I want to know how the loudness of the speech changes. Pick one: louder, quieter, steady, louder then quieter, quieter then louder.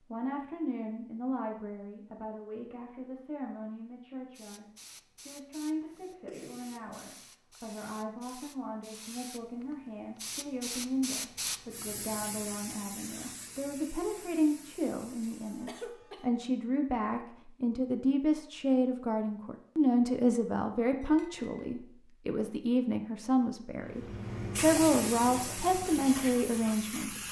louder.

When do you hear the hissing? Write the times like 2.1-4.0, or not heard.
4.3-15.8, 23.9-27.2.